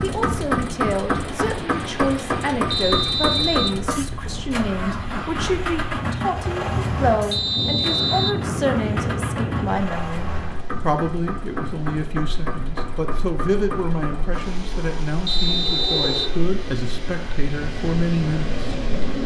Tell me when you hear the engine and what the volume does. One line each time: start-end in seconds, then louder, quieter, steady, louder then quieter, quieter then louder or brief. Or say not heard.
0.0-19.2 quieter.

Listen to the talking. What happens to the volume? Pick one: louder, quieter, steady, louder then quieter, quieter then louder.
steady.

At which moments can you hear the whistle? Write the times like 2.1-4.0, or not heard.
2.7-3.8, 7.3-8.3, 15.2-16.4.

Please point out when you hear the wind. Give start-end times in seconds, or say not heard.
0.0-19.2.